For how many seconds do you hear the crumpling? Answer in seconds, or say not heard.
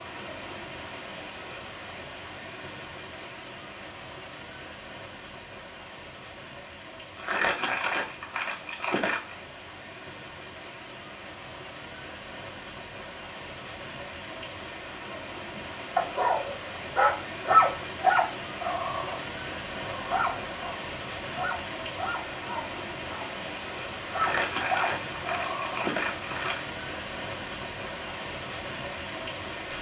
5 s.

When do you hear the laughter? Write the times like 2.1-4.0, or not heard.
not heard.